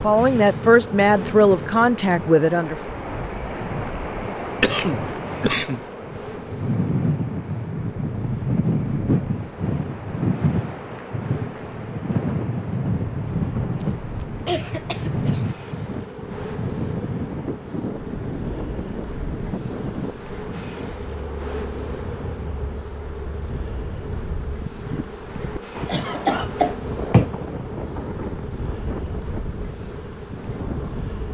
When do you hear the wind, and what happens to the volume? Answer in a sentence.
You can hear the wind from 0.0 to 31.2 s, getting louder then quieter.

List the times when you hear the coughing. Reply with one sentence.
You can hear the coughing from 4.6 to 5.8 s, from 13.8 to 15.4 s and from 25.9 to 27.4 s.